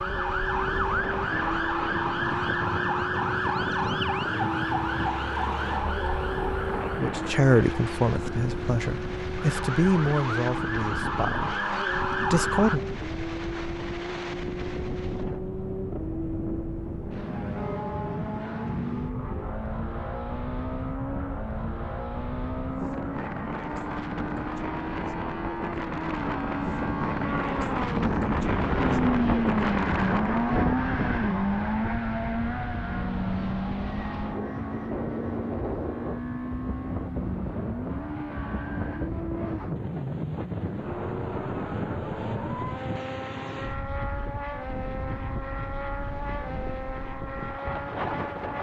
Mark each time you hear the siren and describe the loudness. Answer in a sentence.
The siren can be heard from 0.0 to 12.8 s, getting quieter then louder.